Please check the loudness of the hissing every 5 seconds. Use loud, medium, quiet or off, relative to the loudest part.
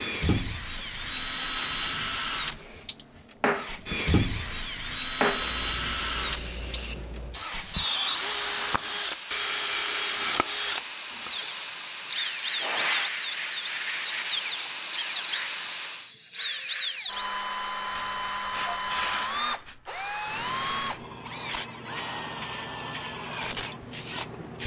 medium, loud, loud, loud, medium.